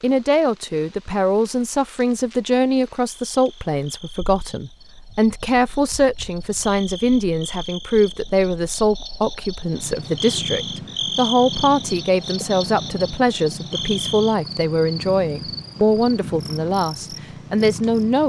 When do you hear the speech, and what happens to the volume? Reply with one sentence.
You can hear the speech from 0.0 to 18.2 s, at a steady volume.